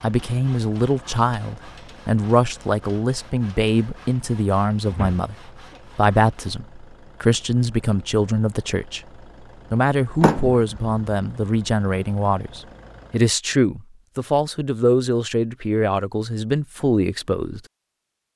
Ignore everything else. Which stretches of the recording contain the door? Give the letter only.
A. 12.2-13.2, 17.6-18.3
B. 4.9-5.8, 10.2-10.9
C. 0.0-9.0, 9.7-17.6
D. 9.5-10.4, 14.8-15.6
B.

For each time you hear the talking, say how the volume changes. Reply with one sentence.
The talking can be heard from 0.0 to 9.0 s, at a steady volume; and from 9.7 to 17.6 s, at a steady volume.